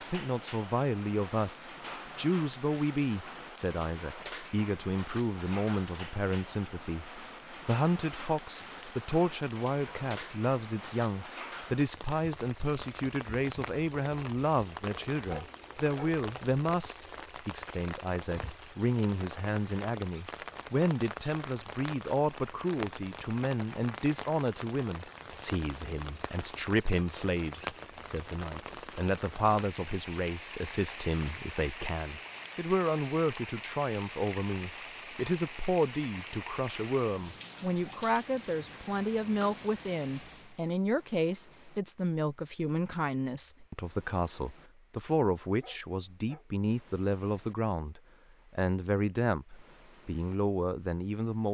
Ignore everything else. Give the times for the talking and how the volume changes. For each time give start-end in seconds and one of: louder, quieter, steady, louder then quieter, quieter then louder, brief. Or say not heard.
0.1-51.4 steady.